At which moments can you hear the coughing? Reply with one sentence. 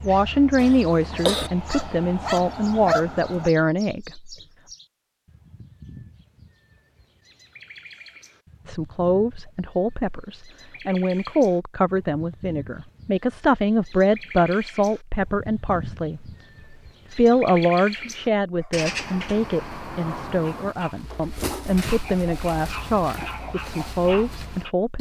You can hear the coughing from 0.6 to 1.5 s.